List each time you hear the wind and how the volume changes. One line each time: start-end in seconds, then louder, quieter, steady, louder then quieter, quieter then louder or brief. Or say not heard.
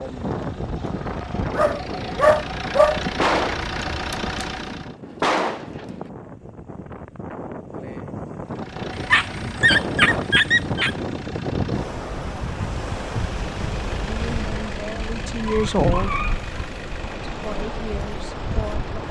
0.0-19.0 quieter then louder.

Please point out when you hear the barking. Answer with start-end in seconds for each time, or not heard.
1.5-3.0, 8.9-10.9, 15.4-16.4.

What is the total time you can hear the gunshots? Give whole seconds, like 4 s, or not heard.
3 s.